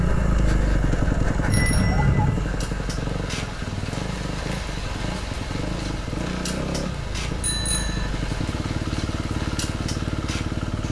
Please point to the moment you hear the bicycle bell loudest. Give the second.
2 s.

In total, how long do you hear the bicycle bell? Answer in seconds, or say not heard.
2 s.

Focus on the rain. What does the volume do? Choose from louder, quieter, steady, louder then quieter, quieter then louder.
steady.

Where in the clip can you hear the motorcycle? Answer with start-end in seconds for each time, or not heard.
0.0-10.8.